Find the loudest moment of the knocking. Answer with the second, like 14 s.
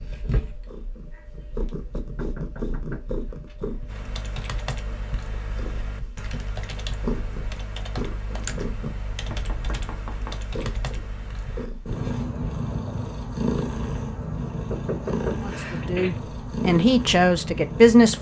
15 s.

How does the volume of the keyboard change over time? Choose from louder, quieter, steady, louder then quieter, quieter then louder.
steady.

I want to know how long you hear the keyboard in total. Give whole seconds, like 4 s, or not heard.
8 s.